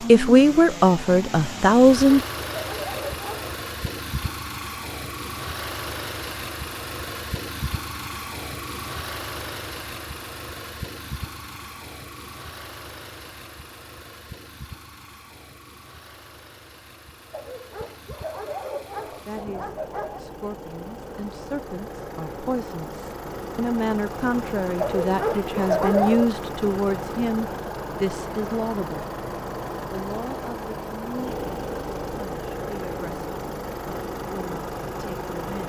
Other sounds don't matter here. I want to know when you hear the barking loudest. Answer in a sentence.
The loudest moment of the barking is at 26 seconds.